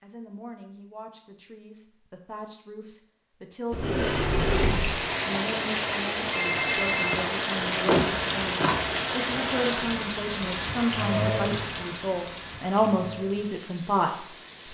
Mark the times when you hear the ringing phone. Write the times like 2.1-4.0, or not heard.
6.3-7.2.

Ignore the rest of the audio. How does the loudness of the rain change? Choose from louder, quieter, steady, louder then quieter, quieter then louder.
quieter.